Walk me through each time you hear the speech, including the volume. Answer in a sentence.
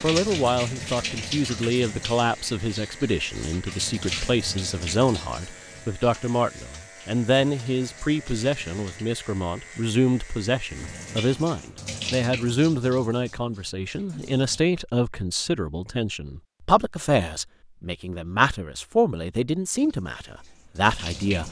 The speech can be heard from 0.0 to 21.4 s, at a steady volume.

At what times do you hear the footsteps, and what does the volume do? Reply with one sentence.
The footsteps can't be heard in this clip.